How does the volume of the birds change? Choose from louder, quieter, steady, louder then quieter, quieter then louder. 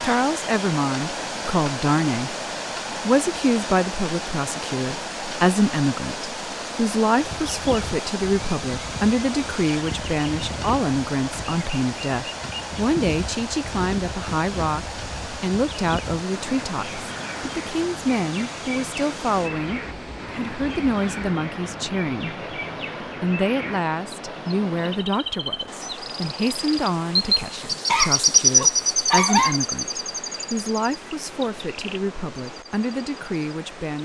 louder.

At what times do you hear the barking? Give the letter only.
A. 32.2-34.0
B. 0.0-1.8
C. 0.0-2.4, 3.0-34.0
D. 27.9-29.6
D.